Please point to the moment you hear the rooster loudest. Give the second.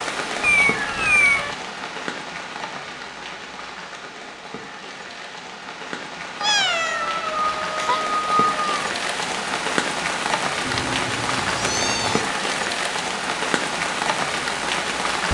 8 s.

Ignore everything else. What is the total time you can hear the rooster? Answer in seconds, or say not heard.
2 s.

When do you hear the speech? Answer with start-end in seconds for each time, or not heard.
not heard.